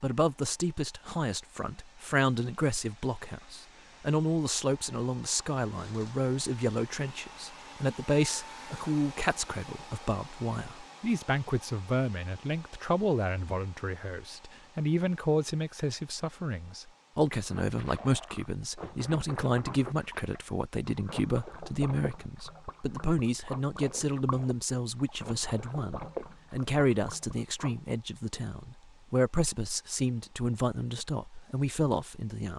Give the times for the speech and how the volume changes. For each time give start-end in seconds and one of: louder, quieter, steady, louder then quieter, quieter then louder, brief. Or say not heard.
0.0-32.5 steady.